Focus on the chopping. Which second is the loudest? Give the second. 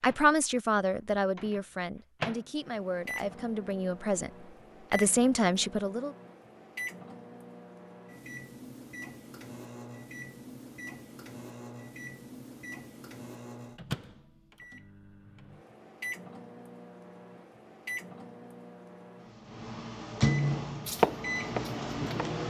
21 s.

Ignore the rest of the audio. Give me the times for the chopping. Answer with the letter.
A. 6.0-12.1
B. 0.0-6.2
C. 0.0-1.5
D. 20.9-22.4
D.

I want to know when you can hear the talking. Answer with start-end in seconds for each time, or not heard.
0.0-6.2.